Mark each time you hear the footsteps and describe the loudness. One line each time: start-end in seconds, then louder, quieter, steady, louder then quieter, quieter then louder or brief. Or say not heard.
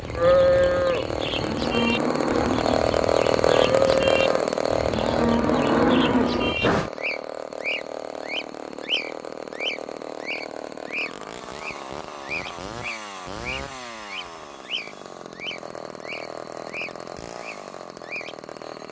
not heard.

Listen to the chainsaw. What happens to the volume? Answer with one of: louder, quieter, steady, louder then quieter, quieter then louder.
quieter.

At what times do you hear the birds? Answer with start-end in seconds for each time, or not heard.
0.0-18.4.